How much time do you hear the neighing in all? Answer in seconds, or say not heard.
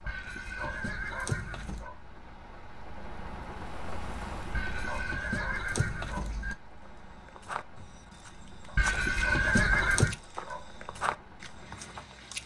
5 s.